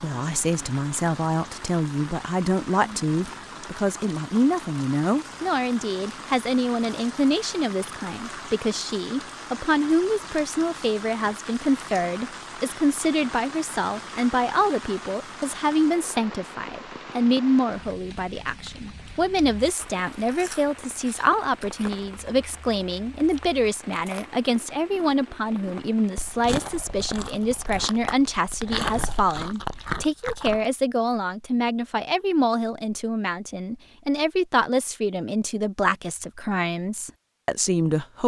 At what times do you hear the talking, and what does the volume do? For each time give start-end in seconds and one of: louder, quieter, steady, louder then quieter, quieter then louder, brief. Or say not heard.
0.0-38.2 steady.